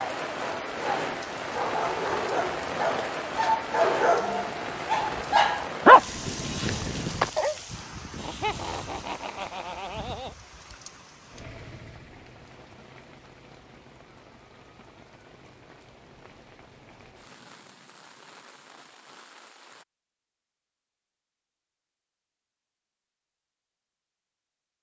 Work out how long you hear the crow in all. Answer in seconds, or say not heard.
not heard.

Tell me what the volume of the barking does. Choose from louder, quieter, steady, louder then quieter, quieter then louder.
louder then quieter.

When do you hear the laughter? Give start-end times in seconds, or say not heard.
8.2-10.3.